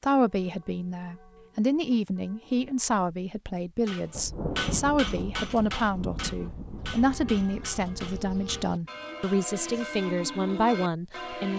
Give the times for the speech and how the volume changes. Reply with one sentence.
You can hear the speech from 0.0 to 11.5 s, at a steady volume.